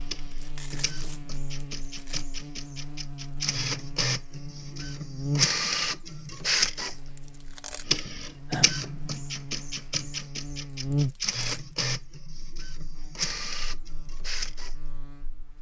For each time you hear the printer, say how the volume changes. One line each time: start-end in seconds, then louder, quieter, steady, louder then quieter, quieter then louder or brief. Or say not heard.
0.0-15.5 louder then quieter.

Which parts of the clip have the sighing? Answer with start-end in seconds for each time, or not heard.
8.1-8.7.